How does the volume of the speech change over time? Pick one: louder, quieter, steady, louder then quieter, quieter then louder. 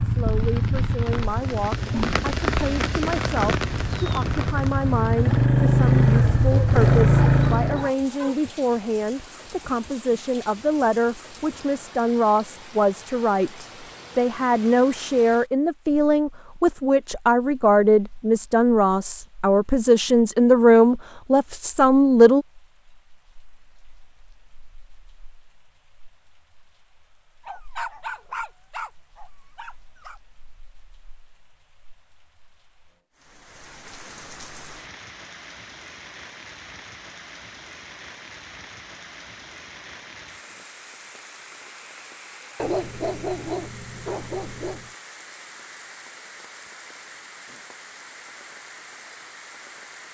louder.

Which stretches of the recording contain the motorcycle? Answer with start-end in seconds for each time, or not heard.
0.0-7.9.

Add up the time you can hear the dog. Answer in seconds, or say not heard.
7 s.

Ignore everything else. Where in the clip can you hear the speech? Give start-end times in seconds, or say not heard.
0.0-22.4.